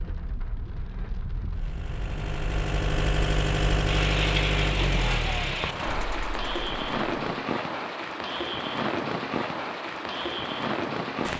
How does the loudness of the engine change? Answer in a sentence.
The loudness of the engine goes up, then down.